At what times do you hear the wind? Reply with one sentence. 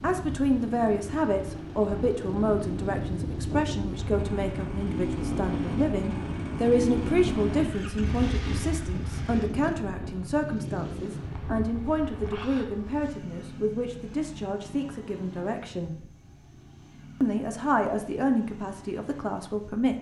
You can hear the wind from 0.0 to 12.3 s.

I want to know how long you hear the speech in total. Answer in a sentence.
The speech can be heard for 19 seconds in total.